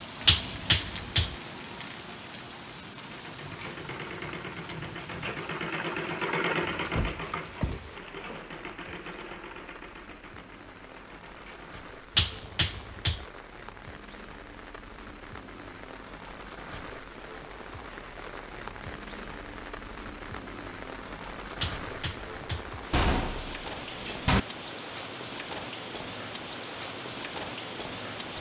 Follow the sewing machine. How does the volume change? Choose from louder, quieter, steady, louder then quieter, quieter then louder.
louder then quieter.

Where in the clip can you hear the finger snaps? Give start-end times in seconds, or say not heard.
0.2-1.4, 12.2-13.2, 21.6-22.7.